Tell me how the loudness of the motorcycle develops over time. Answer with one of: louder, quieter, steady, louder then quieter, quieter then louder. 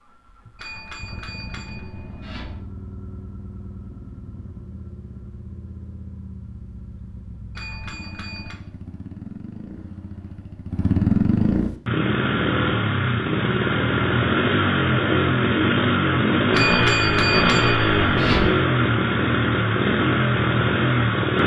louder.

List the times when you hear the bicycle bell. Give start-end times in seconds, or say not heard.
0.6-2.6, 7.5-8.6, 16.5-18.5.